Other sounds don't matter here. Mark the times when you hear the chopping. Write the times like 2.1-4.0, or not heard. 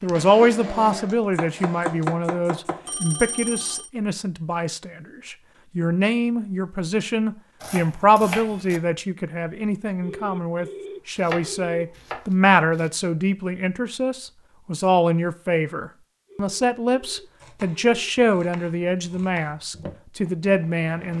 1.4-2.9, 7.6-8.8, 11.2-12.9, 17.4-19.4.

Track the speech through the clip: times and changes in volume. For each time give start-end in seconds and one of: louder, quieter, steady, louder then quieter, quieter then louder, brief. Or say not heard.
0.0-21.1 steady.